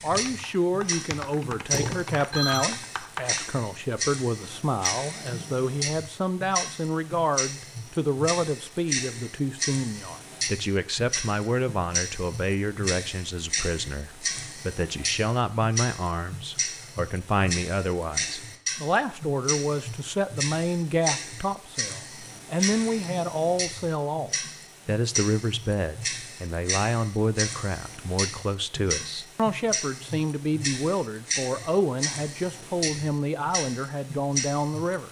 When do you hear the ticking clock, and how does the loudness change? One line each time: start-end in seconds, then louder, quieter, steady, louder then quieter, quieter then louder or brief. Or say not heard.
0.0-35.0 steady.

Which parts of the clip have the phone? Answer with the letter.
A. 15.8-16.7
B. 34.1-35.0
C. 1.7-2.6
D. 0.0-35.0
C.